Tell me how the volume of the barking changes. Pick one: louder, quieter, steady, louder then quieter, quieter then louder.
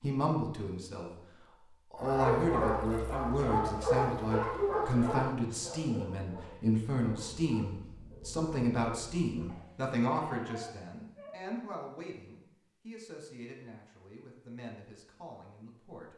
quieter.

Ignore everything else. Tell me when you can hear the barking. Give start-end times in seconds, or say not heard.
1.9-11.5.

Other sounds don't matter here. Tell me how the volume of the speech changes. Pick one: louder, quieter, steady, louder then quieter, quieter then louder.
quieter.